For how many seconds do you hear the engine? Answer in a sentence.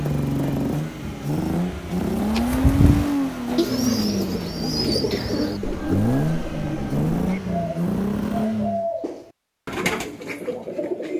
You can hear the engine for 9 seconds altogether.